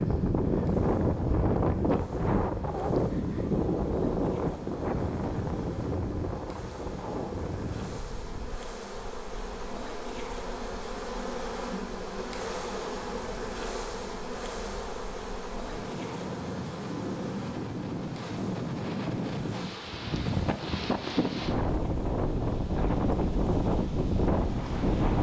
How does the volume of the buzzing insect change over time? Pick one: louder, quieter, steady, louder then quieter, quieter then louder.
louder then quieter.